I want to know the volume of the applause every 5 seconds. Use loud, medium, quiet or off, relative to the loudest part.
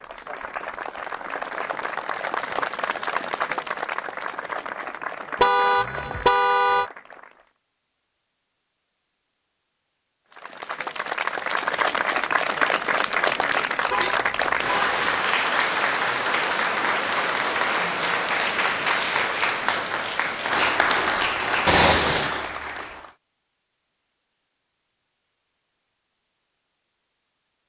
medium, quiet, loud, loud, loud, off.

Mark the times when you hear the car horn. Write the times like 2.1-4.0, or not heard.
5.3-6.9, 13.9-14.9, 21.6-22.4.